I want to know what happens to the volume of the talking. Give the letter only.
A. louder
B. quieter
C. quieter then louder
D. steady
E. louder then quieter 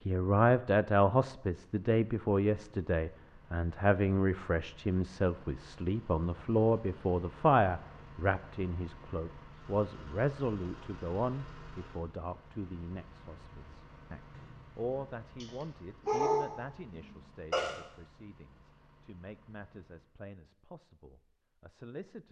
B.